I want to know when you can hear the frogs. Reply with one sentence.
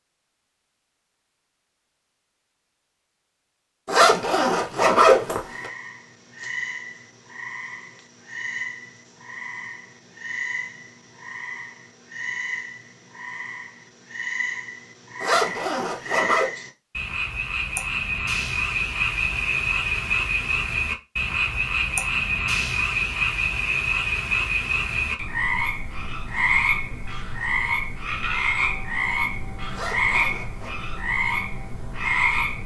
The frogs can be heard from 5.3 to 32.6 s.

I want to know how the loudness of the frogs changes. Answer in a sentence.
The volume of the frogs goes up.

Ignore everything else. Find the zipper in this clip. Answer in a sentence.
You can hear the zipper from 3.9 to 5.7 s, from 15.2 to 16.5 s and from 29.7 to 30.8 s.